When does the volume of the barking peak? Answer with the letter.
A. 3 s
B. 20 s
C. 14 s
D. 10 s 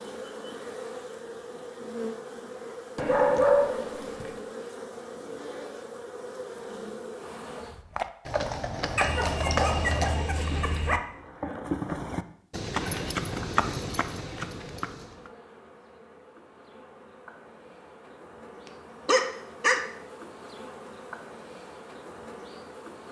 A.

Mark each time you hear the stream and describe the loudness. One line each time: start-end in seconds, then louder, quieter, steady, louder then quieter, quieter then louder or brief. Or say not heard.
not heard.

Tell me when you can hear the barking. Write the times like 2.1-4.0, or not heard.
3.0-4.3, 8.9-11.0, 19.1-19.9.